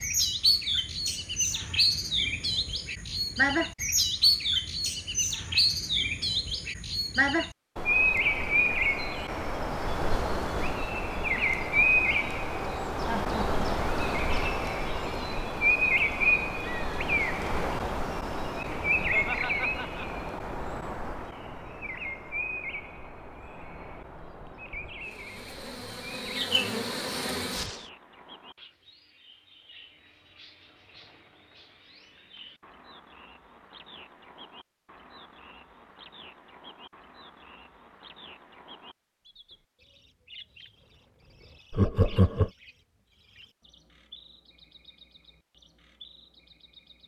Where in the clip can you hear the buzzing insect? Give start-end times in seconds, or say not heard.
25.0-27.9.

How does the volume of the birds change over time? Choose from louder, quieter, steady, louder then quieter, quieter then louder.
quieter.